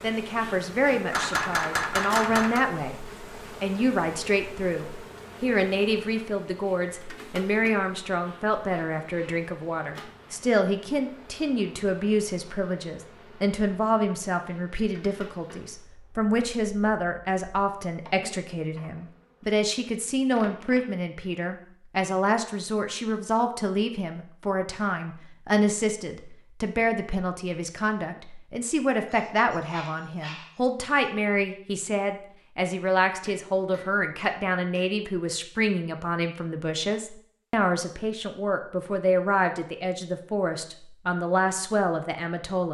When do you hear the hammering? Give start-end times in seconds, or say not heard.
1.1-2.6, 33.2-34.9.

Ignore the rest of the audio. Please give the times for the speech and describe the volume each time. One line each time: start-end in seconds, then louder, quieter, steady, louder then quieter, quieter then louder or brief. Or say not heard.
0.0-42.6 steady.